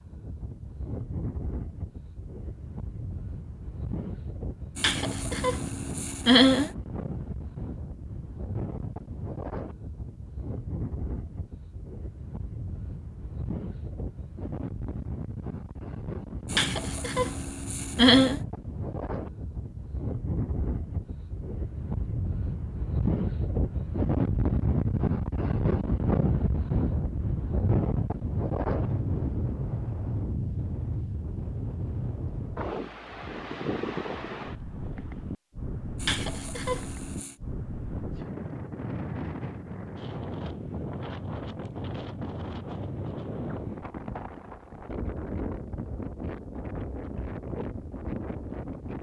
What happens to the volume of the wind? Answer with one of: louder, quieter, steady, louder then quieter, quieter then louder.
louder then quieter.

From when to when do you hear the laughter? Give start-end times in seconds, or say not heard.
4.8-6.7, 16.5-18.4, 36.0-37.4.